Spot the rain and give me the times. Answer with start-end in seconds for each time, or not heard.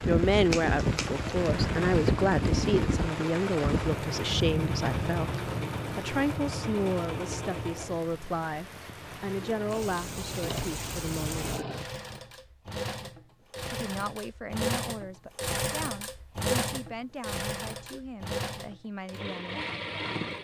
0.0-11.7.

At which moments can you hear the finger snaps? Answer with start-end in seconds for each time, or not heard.
0.5-1.5.